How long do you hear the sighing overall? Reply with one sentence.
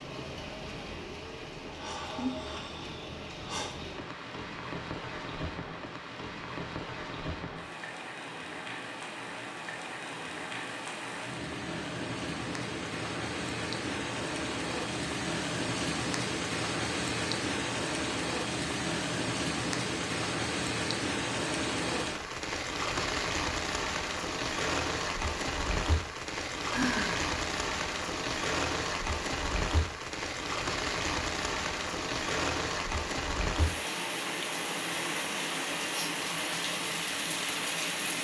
The sighing can be heard for 3 seconds in total.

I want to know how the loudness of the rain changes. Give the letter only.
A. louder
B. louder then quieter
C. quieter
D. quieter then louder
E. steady
A.